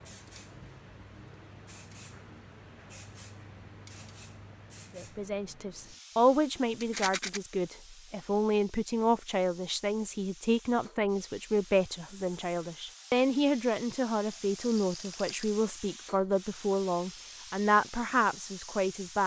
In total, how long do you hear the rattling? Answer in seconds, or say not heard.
2 s.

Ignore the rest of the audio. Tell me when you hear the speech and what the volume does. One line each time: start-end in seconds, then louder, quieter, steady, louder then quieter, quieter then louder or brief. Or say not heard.
5.0-19.2 steady.